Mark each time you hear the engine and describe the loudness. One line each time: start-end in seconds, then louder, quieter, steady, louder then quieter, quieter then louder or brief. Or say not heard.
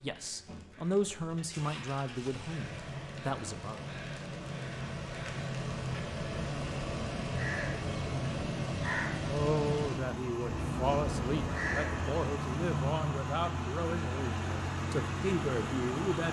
0.0-16.2 louder.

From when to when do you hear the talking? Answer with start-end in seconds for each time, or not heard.
0.0-3.9, 9.2-16.2.